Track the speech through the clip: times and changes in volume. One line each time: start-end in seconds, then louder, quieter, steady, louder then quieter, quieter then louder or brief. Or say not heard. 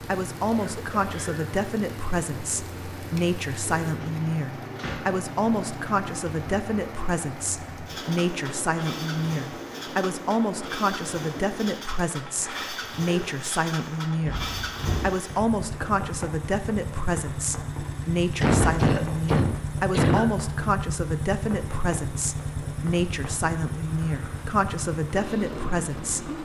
0.1-26.4 steady.